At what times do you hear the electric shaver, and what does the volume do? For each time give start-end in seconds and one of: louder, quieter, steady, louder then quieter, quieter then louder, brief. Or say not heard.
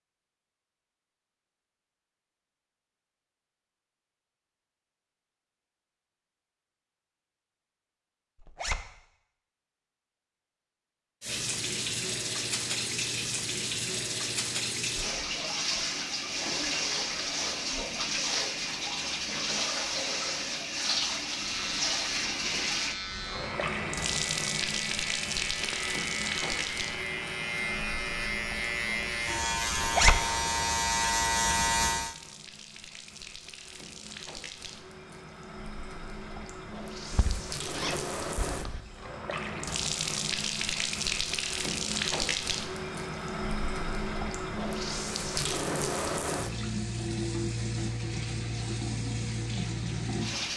21.4-32.1 louder.